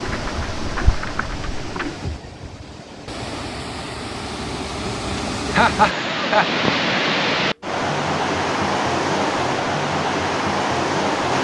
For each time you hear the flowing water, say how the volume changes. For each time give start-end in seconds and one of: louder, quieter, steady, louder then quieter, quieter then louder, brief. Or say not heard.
0.0-11.3 louder.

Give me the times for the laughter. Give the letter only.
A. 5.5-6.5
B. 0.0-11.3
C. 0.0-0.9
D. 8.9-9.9
A.